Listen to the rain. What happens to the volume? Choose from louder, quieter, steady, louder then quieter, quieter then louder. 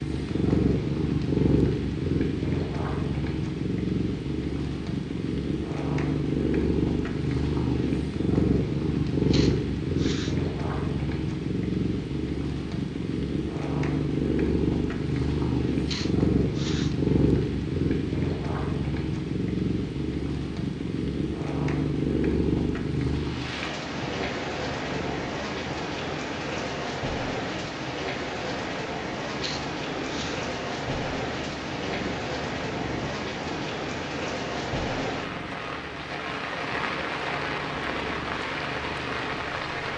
louder.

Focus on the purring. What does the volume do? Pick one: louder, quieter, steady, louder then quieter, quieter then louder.
quieter.